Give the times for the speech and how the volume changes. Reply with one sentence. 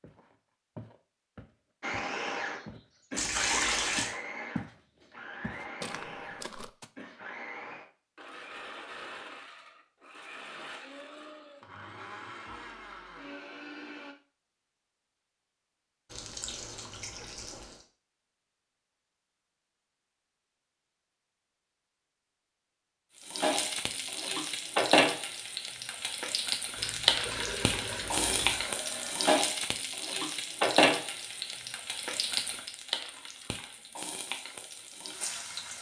You can't hear the speech here.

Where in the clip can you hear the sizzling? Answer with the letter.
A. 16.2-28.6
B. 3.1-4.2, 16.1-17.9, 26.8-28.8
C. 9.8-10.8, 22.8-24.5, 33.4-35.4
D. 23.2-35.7
D.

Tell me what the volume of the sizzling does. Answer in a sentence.
The loudness of the sizzling goes down.